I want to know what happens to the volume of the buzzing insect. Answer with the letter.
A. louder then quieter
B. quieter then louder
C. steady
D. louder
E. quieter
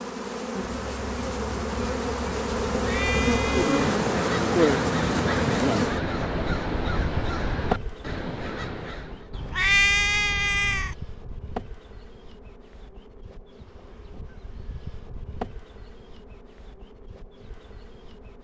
E.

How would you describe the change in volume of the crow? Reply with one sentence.
The loudness of the crow goes up, then down.